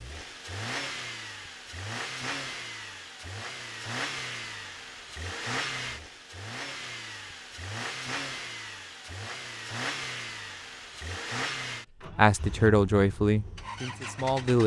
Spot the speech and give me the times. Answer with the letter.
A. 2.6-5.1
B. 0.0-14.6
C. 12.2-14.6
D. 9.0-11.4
C.